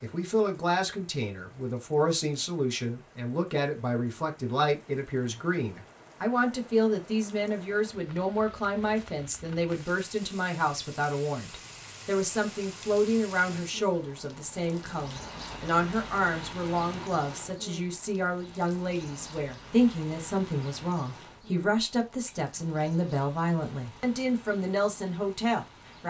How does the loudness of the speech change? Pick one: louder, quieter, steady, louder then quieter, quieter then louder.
steady.